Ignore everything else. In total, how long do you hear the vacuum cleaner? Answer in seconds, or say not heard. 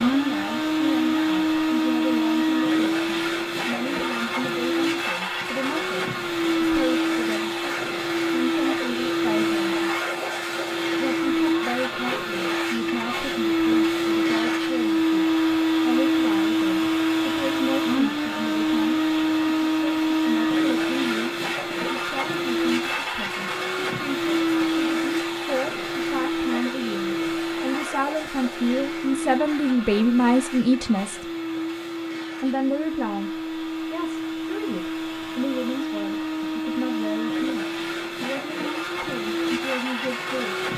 41 s.